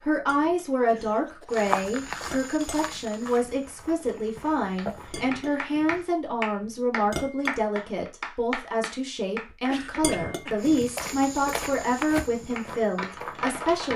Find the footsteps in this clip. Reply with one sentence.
The footsteps can be heard from 1.5 to 5.3 s and from 10.6 to 13.9 s.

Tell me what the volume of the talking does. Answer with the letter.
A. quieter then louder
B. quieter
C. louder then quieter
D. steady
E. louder
D.